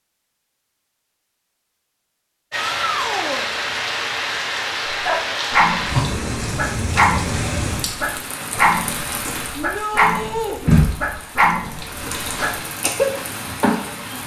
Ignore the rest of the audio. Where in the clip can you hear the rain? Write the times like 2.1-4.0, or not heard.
2.5-14.2.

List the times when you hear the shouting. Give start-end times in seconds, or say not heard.
2.5-3.5, 9.6-10.6.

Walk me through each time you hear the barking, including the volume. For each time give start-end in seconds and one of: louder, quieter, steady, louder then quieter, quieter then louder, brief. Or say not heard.
4.8-13.1 steady.